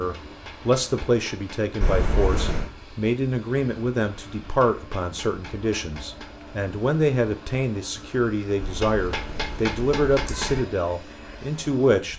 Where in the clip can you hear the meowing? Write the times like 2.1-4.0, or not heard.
1.8-2.7, 8.6-10.6.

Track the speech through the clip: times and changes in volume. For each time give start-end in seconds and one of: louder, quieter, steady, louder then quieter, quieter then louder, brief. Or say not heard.
0.0-12.1 steady.